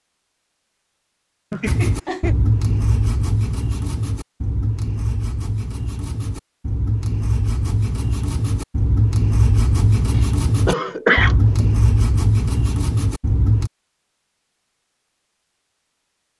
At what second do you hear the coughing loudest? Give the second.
11 s.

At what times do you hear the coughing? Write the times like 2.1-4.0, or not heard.
1.5-2.4, 10.2-11.7.